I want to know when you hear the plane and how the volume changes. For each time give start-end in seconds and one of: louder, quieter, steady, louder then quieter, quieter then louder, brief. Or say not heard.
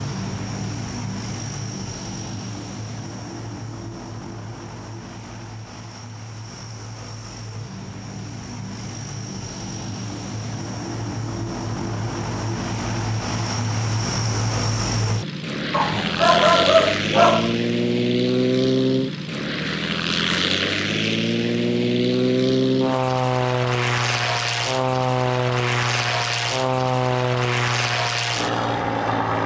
0.0-29.4 louder.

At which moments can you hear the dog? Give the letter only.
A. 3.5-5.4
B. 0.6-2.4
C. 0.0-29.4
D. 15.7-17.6
D.